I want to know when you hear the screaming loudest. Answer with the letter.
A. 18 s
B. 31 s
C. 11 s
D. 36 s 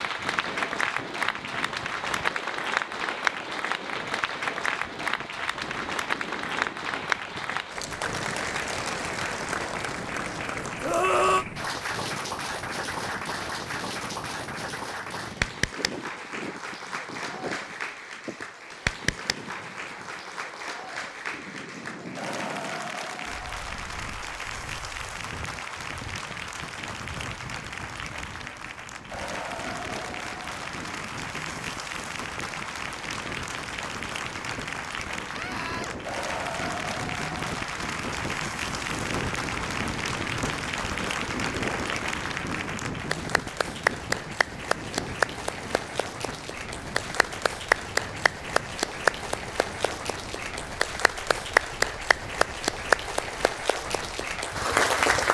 C.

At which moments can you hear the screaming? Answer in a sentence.
You can hear the screaming from 10.8 to 11.4 s and from 35.3 to 36.0 s.